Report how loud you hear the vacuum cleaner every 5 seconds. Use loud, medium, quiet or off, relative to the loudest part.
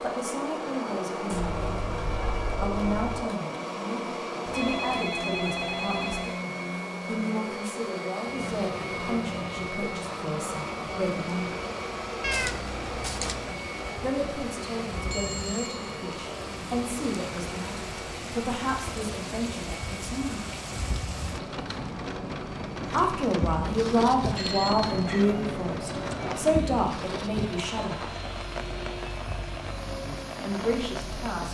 loud, loud, loud, medium, medium, medium, medium.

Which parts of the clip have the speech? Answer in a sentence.
You can hear the speech from 0.0 to 11.6 s, from 14.0 to 20.4 s, from 22.9 to 28.1 s and from 30.4 to 31.5 s.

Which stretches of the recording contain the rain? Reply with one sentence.
You can hear the rain from 8.2 to 31.5 s.